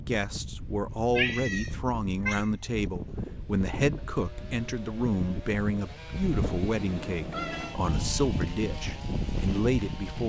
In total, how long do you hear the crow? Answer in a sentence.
You can't hear the crow here.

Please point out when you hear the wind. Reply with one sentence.
The wind can be heard from 0.0 to 10.2 s.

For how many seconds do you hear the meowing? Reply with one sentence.
You can hear the meowing for 3 seconds altogether.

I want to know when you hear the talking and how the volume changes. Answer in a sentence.
The talking can be heard from 0.0 to 10.2 s, at a steady volume.